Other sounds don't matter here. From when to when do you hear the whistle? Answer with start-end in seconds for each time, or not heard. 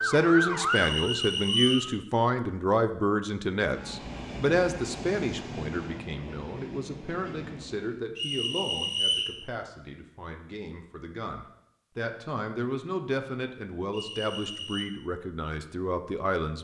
0.7-1.9, 8.2-9.3, 13.9-14.8.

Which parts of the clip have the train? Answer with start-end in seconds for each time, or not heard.
3.6-8.0.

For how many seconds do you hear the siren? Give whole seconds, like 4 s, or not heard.
2 s.